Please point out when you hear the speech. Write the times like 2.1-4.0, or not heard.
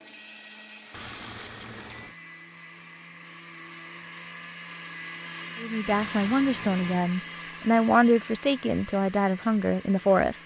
5.6-10.4.